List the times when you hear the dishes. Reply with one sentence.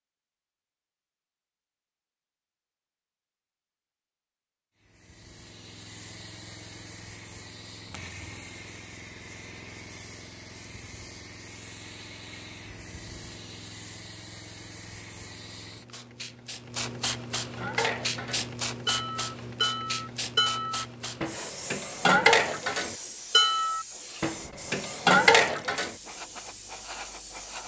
The dishes can be heard from 17.6 to 25.9 s.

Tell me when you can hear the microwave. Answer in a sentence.
You can't hear the microwave here.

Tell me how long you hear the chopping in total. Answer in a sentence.
You can't hear the chopping here.